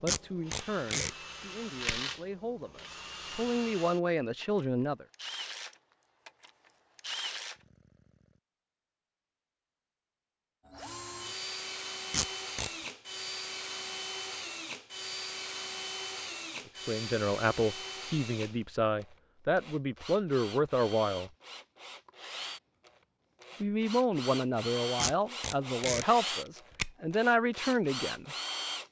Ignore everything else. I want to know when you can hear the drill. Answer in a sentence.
You can hear the drill from 0.0 to 8.4 s and from 10.7 to 28.8 s.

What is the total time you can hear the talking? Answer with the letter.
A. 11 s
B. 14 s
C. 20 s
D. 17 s
B.